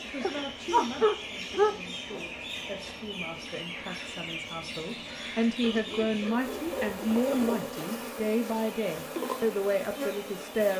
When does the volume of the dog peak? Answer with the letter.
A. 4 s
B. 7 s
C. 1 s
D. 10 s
C.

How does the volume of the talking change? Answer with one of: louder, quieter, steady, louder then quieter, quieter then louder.
louder.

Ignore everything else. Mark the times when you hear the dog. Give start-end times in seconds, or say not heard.
0.2-2.2, 5.6-7.7.